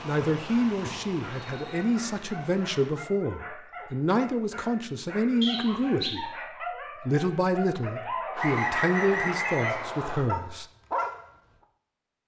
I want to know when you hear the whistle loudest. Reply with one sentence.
The loudest moment of the whistle is at 9 seconds.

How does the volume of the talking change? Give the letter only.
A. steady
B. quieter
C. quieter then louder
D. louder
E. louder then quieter
A.